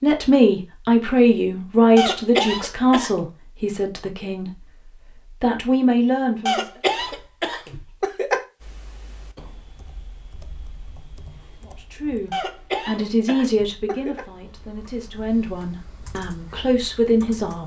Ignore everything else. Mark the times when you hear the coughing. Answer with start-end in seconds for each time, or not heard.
1.9-3.1, 6.5-8.4, 12.3-14.2.